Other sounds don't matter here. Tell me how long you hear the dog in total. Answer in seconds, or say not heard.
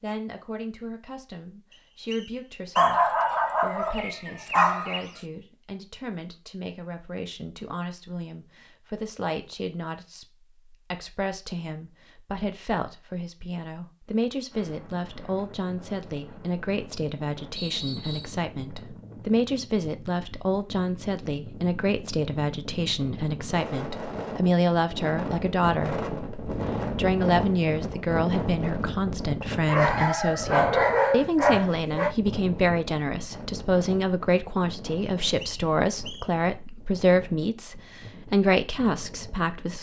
5 s.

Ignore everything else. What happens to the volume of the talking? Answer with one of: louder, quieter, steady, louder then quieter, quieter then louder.
louder.